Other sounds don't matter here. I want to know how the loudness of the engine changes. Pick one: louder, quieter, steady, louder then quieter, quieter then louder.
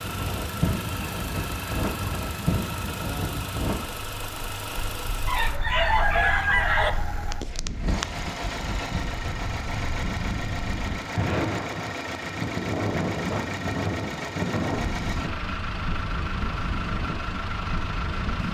steady.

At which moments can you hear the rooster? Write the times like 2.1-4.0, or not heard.
5.2-6.9.